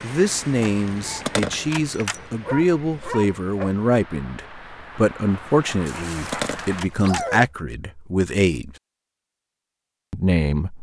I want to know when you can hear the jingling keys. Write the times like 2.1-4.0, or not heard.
0.6-2.2, 5.7-7.2.